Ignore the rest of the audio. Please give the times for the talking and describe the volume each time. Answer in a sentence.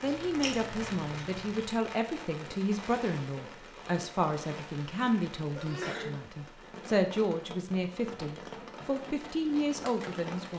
You can hear the talking from 0.0 to 10.5 s, at a steady volume.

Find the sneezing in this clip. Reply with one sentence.
The sneezing can be heard from 0.0 to 1.7 s and from 5.5 to 6.2 s.